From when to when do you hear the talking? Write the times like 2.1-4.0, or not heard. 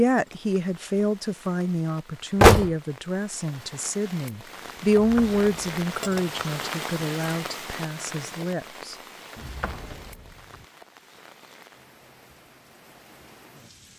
0.0-8.9.